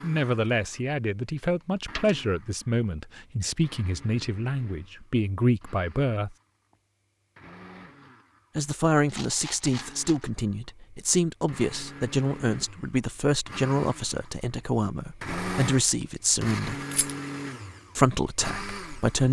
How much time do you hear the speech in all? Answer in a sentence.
The speech can be heard for 16 seconds in total.